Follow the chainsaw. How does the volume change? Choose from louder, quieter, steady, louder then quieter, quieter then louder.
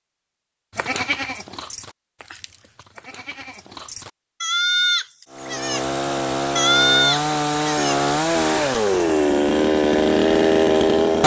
louder.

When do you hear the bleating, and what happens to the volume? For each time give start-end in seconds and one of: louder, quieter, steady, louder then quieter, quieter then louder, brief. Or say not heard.
0.8-5.8 quieter then louder
6.5-8.0 brief.